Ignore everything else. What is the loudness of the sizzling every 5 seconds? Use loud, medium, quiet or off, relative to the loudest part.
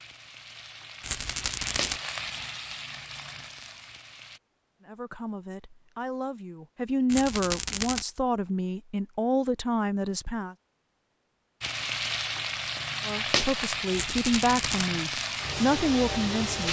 medium, off, loud, loud.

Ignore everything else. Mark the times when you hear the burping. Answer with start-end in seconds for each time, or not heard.
not heard.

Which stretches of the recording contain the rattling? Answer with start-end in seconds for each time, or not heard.
1.0-2.0, 7.0-8.1, 13.9-14.8.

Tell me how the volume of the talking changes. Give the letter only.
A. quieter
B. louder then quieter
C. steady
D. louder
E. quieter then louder
D.